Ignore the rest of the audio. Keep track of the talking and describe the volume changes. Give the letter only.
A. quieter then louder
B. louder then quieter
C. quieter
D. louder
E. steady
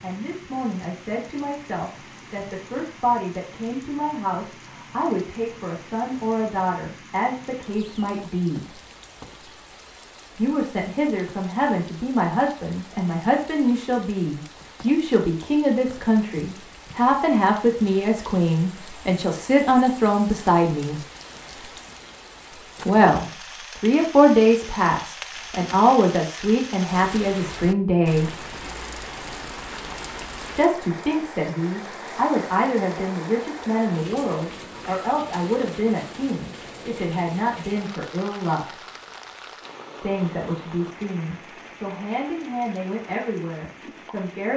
B.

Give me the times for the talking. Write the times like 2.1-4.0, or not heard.
0.0-8.7, 10.3-21.0, 22.9-28.3, 30.6-38.8, 40.0-44.5.